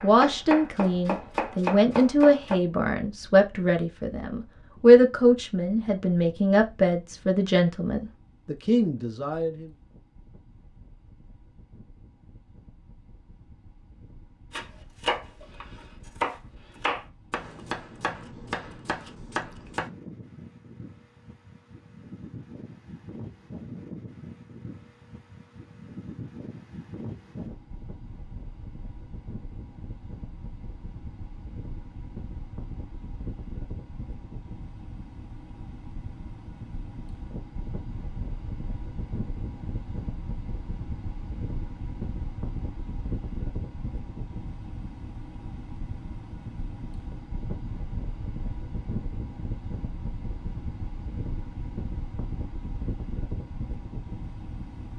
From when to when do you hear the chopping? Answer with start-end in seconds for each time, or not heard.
0.0-2.5, 14.5-19.9.